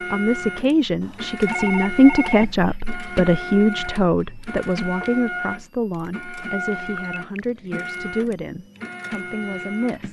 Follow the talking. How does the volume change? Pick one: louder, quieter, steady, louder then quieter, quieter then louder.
quieter.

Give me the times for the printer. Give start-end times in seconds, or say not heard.
0.0-10.0.